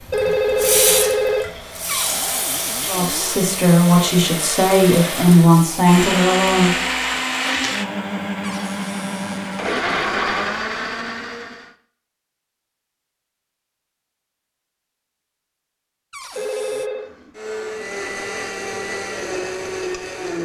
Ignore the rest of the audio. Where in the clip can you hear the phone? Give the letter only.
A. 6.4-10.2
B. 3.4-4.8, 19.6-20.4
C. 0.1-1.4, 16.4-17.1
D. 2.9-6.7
C.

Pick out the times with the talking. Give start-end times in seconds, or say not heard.
2.9-6.7.